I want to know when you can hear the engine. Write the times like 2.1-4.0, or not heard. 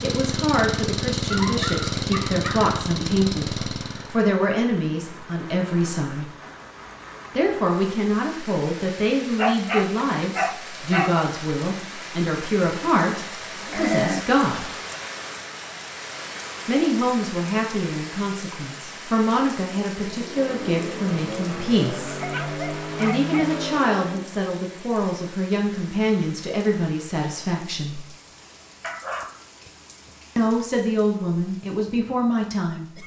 0.0-4.2, 19.9-24.3.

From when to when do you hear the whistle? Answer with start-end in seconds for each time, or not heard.
not heard.